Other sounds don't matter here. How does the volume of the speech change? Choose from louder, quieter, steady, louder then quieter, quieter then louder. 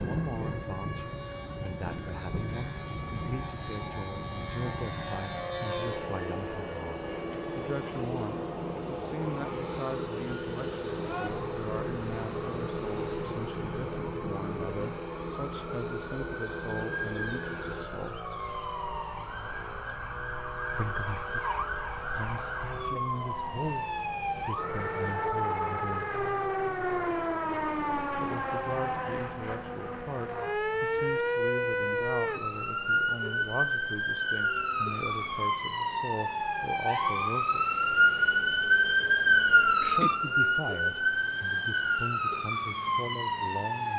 steady.